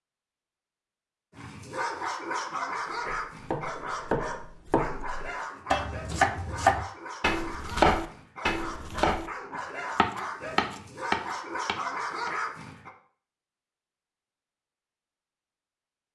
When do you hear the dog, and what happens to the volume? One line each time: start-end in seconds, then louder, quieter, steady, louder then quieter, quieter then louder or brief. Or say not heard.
1.4-12.9 quieter then louder.